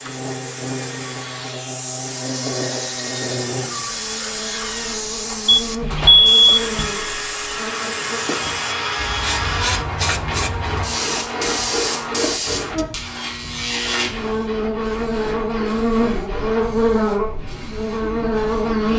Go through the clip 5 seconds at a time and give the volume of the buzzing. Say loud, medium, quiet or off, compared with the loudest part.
medium, medium, medium, loud.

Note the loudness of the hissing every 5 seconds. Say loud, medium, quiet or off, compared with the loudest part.
loud, loud, loud, quiet.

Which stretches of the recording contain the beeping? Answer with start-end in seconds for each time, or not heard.
5.5-6.9.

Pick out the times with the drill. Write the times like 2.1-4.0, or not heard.
0.0-18.9.